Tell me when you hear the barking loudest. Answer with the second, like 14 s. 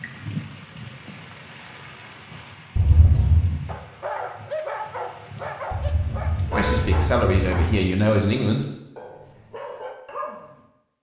5 s.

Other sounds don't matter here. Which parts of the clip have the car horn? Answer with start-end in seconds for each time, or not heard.
2.8-3.5, 5.7-7.7.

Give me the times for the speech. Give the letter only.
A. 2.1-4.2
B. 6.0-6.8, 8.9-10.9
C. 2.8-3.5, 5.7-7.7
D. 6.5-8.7
D.